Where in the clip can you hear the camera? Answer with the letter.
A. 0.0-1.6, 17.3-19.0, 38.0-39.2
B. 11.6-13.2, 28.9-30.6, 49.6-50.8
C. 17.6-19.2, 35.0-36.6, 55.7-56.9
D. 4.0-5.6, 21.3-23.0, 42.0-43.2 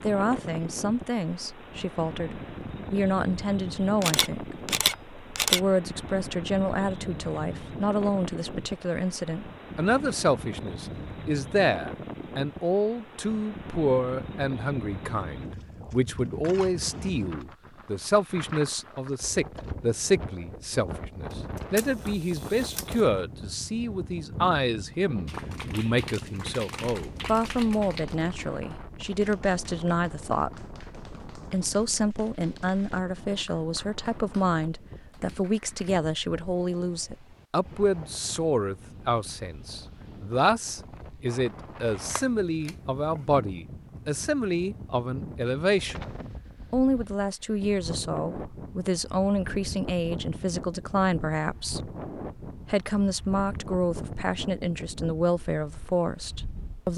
D.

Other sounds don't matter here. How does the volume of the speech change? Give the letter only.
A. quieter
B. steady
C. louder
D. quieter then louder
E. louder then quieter
B.